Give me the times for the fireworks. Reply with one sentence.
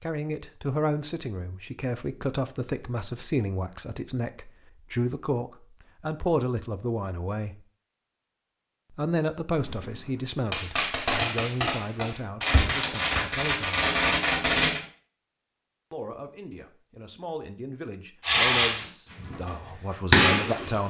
You can hear the fireworks from 9.6 to 14.8 s, from 18.2 to 19.5 s and from 20.1 to 20.8 s.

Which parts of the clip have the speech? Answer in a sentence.
You can hear the speech from 0.0 to 7.5 s, from 8.9 to 13.8 s and from 15.9 to 20.8 s.